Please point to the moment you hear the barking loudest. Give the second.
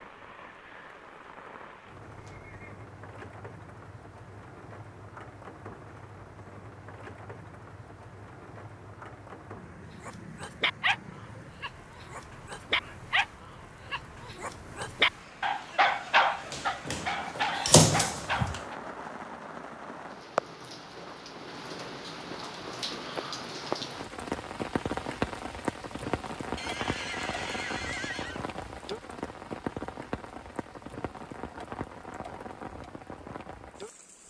18 s.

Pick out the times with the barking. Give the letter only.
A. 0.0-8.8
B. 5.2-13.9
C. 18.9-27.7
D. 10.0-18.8
D.